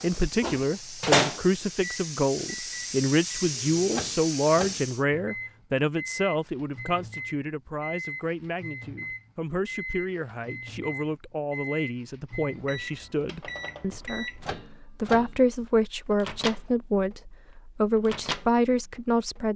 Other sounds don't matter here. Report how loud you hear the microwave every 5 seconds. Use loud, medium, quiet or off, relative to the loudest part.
loud, medium, medium, medium.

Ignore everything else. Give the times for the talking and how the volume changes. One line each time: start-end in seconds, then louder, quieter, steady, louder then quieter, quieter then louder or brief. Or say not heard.
0.0-19.5 quieter then louder.